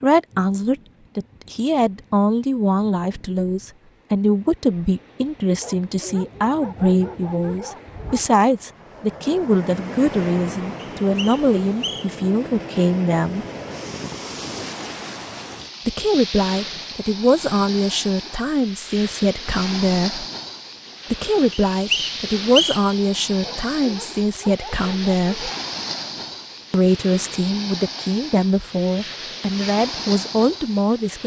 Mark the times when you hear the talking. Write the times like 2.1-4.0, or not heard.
0.0-13.4, 15.8-20.2, 21.1-25.5, 26.7-31.2.